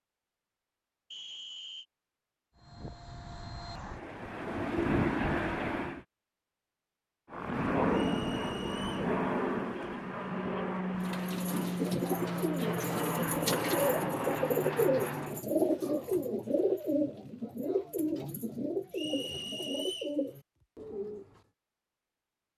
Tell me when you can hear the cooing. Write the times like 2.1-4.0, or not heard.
11.0-21.4.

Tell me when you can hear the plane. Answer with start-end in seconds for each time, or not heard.
2.5-6.0, 7.3-15.4.